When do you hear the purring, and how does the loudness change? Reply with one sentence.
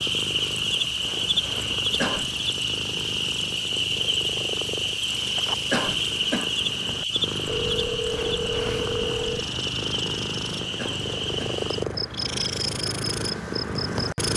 You can hear the purring from 0.0 to 14.3 s, getting louder.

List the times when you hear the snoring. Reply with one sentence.
The snoring can't be heard in this clip.